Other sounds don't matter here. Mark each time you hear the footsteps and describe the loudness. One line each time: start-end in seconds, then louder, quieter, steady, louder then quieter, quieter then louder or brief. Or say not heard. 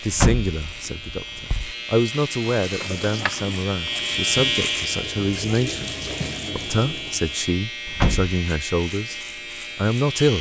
not heard.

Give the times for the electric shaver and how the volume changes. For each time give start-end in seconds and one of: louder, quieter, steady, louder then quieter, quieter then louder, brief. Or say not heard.
0.0-10.3 louder then quieter.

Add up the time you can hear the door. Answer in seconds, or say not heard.
2 s.